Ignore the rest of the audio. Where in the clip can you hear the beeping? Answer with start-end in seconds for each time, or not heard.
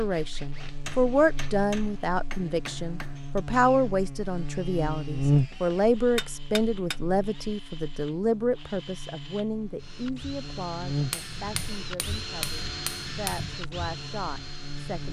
not heard.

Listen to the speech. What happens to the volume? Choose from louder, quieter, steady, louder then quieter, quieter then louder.
quieter.